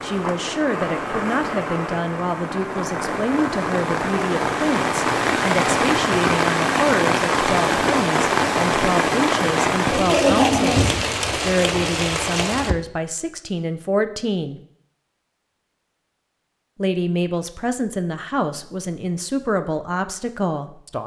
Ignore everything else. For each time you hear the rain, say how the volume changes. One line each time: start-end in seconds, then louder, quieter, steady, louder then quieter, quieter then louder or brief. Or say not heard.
0.0-12.8 louder.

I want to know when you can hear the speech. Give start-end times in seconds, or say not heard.
0.0-14.6, 16.8-21.0.